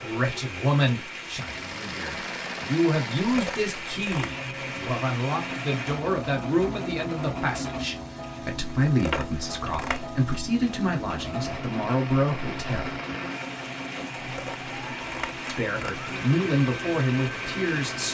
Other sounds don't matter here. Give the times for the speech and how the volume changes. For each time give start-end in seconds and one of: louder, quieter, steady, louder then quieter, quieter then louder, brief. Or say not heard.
0.0-13.0 steady
15.4-18.1 brief.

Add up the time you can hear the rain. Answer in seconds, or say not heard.
18 s.